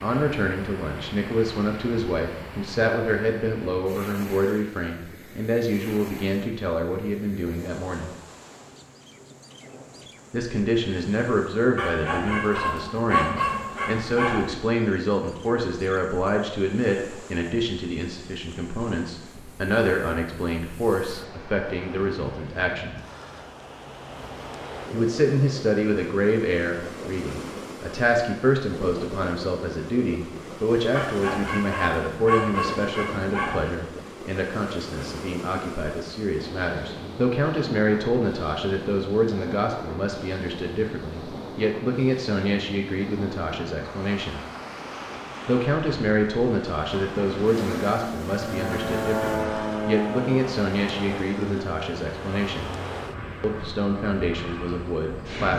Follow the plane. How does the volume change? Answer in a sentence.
The volume of the plane goes down.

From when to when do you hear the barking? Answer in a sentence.
You can hear the barking from 11.8 to 14.6 s and from 30.9 to 33.8 s.